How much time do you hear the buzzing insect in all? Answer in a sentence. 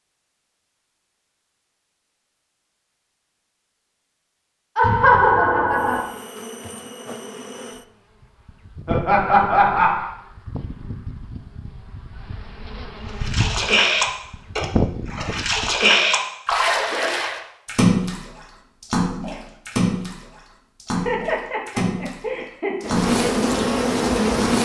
You can hear the buzzing insect for 12 seconds altogether.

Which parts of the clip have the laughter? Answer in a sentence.
The laughter can be heard from 4.8 to 6.0 s, from 8.8 to 10.1 s and from 20.9 to 22.9 s.